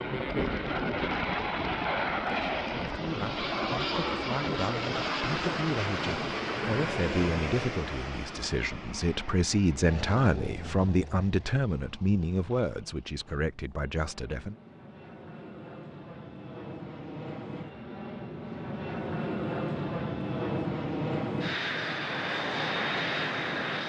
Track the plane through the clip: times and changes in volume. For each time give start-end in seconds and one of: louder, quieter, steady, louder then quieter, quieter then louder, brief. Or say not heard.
0.0-23.8 quieter then louder.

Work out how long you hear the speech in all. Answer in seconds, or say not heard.
12 s.